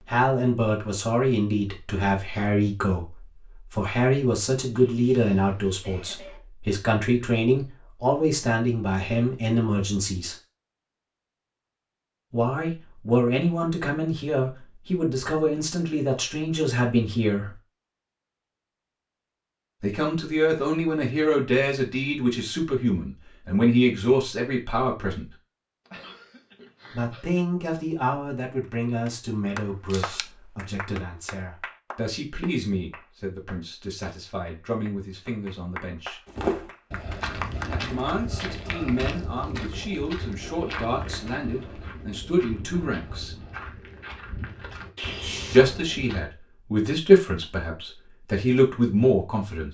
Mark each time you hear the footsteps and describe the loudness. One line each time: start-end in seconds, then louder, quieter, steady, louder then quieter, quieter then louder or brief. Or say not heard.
36.2-46.2 quieter.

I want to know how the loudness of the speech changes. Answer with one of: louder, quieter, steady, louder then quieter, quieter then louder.
quieter then louder.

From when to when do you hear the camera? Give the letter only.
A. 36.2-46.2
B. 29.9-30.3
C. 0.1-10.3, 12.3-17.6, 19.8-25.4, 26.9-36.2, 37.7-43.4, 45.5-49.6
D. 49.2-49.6
B.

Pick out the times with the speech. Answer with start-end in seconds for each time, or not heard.
0.1-10.3, 12.3-17.6, 19.8-25.4, 26.9-36.2, 37.7-43.4, 45.5-49.6.